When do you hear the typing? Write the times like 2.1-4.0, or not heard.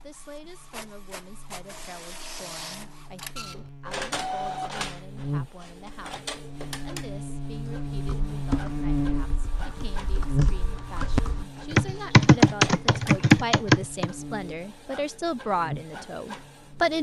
7.9-14.1.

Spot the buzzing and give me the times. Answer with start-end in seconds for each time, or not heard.
0.0-16.9.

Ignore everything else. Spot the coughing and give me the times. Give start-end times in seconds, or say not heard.
not heard.